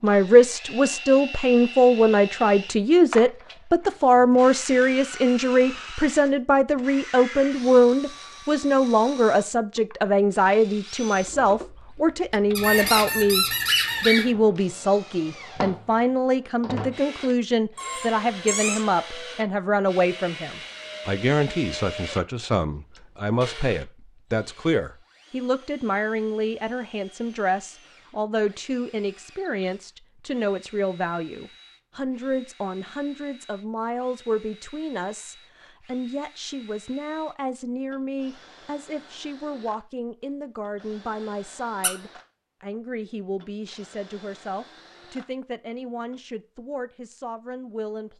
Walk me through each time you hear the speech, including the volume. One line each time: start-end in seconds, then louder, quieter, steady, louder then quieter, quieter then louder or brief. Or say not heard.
0.0-48.1 quieter.